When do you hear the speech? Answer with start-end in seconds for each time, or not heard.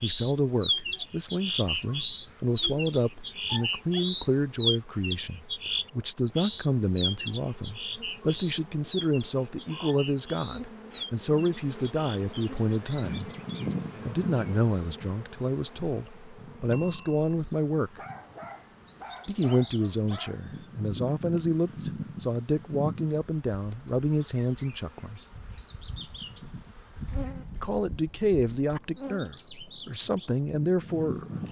0.0-13.3, 14.0-18.0, 19.2-25.2, 27.6-31.3.